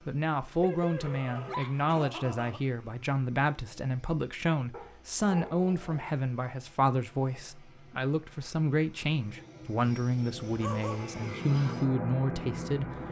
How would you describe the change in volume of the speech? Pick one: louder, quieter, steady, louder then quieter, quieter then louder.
steady.